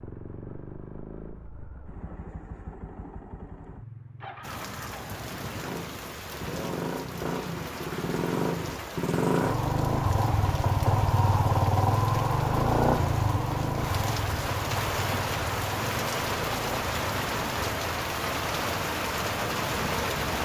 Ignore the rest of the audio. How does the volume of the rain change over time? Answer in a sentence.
The loudness of the rain goes up.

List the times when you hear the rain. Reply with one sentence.
You can hear the rain from 4.4 to 20.4 s.